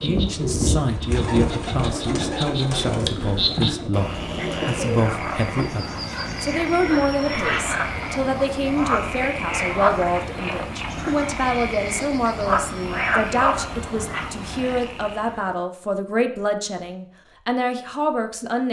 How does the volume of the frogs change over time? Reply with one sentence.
The loudness of the frogs goes up.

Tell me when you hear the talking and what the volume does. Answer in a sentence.
You can hear the talking from 0.0 to 18.6 s, at a steady volume.